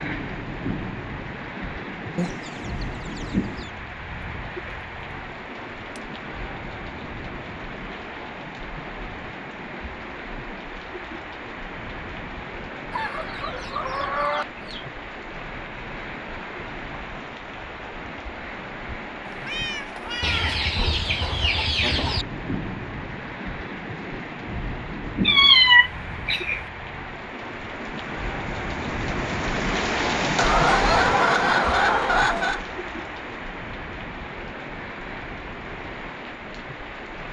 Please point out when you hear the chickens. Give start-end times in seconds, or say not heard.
2.1-3.7, 12.9-14.9, 20.2-22.2, 30.4-32.6.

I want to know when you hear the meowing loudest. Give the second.
26 s.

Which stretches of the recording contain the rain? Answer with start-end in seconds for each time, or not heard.
0.0-37.2.